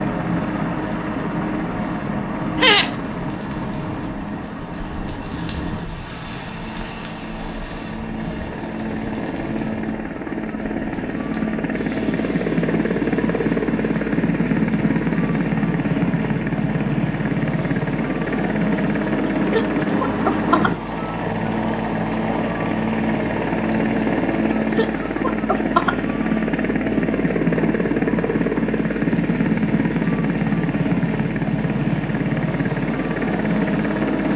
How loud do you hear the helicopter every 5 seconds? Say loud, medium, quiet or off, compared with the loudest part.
medium, medium, loud, loud, loud, loud, loud.